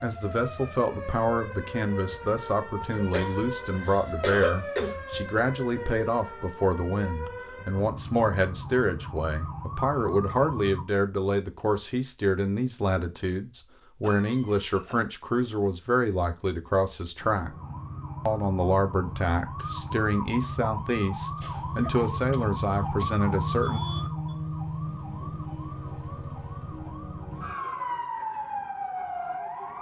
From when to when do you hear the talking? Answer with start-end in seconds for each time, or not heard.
0.0-17.6, 18.2-23.8.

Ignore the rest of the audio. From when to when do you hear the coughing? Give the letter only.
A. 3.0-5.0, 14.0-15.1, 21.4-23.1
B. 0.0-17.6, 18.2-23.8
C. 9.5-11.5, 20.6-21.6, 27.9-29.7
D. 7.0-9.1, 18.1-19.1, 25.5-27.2
A.